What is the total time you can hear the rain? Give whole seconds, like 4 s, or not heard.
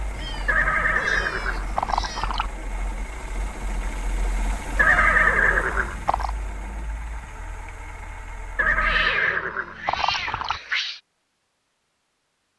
not heard.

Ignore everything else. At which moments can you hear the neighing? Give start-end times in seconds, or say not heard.
0.5-2.5, 4.8-6.3, 8.6-10.6.